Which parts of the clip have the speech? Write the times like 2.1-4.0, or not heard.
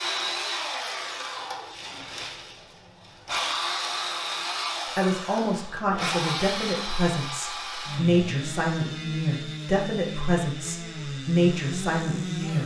5.0-12.6.